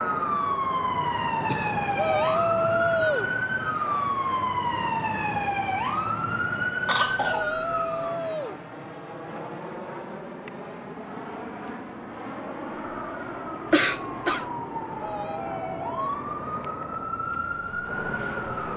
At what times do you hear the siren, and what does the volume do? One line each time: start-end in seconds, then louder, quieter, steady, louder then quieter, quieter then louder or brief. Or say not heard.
0.0-8.2 steady
12.7-18.7 louder.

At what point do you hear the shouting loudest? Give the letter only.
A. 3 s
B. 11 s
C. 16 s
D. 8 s
A.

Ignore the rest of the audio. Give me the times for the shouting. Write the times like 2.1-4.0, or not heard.
1.9-3.3, 7.2-8.6, 14.9-16.1.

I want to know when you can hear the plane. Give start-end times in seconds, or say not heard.
0.0-18.7.